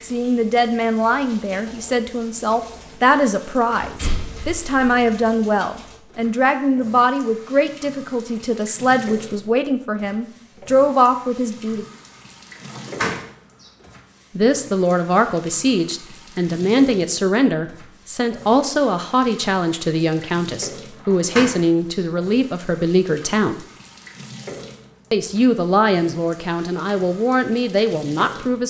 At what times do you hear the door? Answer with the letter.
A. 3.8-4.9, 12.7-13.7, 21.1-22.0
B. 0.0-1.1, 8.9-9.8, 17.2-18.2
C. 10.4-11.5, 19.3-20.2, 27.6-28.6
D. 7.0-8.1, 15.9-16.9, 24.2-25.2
A.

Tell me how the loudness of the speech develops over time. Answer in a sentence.
The loudness of the speech stays about the same.